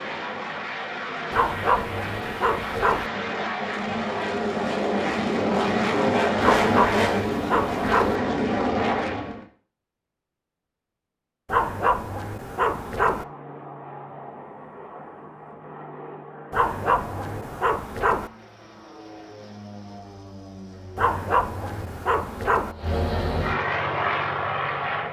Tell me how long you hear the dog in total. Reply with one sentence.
The dog can be heard for 9 seconds in total.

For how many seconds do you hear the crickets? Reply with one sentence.
You can't hear the crickets here.